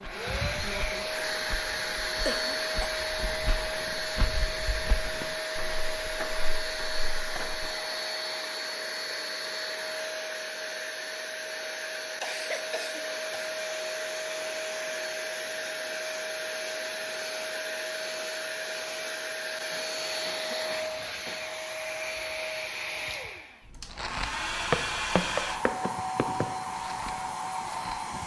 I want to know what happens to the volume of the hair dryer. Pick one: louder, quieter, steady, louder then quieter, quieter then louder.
steady.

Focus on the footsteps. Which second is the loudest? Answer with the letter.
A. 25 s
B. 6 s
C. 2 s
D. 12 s
A.